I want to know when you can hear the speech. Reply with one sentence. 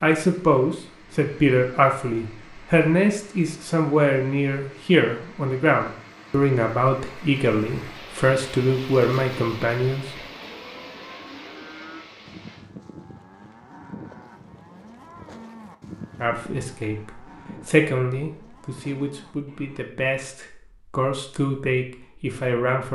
You can hear the speech from 0.0 to 10.2 s and from 16.2 to 22.8 s.